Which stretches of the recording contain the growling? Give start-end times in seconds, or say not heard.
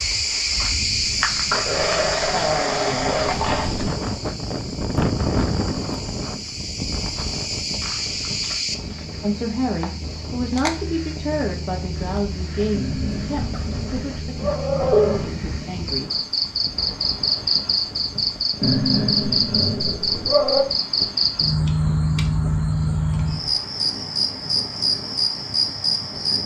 1.5-3.8, 12.7-15.2, 18.6-20.6.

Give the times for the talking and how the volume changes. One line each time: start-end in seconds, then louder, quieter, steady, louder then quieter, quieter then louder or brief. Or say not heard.
9.2-16.2 quieter.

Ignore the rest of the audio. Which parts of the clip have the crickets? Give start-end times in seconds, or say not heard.
0.0-26.4.